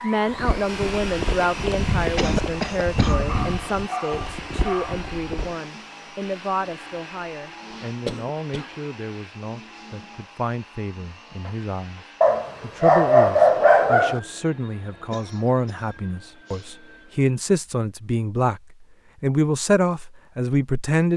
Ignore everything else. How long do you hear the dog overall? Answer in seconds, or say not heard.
4 s.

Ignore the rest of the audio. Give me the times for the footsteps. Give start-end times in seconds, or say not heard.
0.2-5.5.